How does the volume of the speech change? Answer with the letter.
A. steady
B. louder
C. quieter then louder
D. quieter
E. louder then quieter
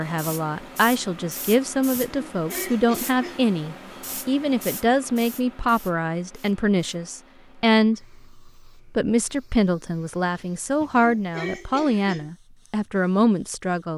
A.